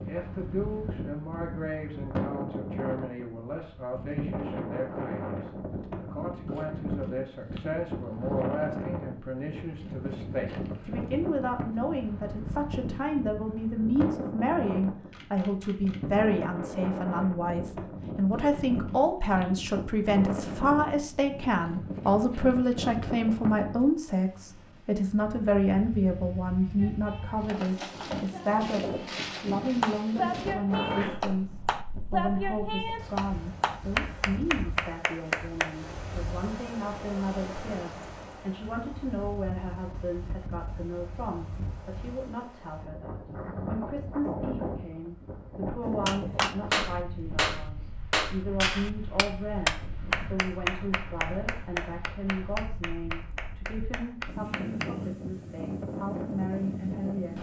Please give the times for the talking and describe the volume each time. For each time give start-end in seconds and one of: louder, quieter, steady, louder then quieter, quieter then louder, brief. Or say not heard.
0.0-57.3 louder then quieter.